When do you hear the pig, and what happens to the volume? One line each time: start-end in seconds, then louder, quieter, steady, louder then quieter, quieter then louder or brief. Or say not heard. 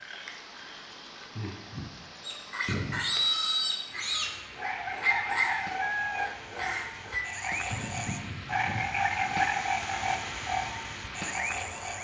2.2-9.4 quieter.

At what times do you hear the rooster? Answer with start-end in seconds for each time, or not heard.
5.0-6.3.